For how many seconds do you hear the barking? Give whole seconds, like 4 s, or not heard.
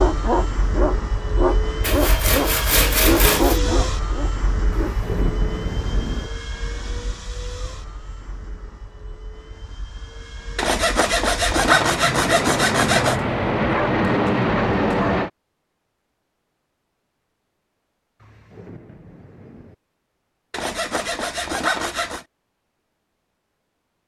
5 s.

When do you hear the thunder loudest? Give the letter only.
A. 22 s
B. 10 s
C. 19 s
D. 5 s
D.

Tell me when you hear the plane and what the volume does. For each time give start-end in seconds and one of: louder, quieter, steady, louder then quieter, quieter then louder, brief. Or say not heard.
0.0-15.3 quieter then louder.